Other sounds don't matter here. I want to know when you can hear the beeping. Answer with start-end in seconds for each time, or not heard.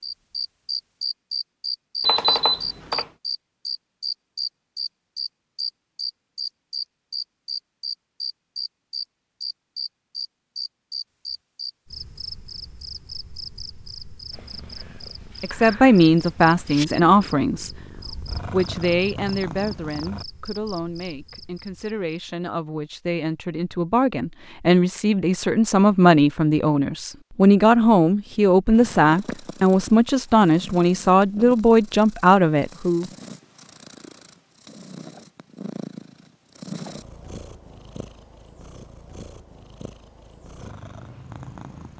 2.0-3.0.